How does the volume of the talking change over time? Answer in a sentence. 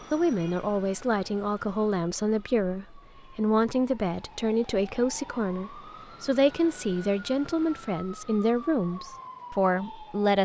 The volume of the talking stays about the same.